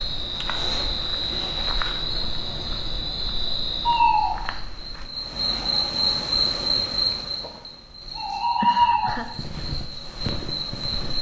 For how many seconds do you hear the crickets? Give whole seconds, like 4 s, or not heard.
11 s.